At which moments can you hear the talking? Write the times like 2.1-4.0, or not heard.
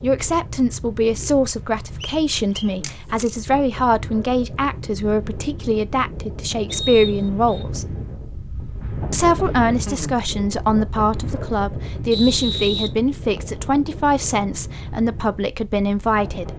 0.0-7.8, 9.1-16.5.